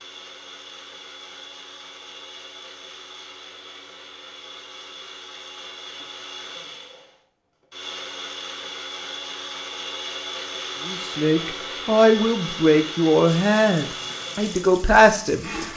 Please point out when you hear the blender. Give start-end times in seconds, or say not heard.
0.0-15.7.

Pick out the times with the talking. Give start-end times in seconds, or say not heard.
10.8-15.5.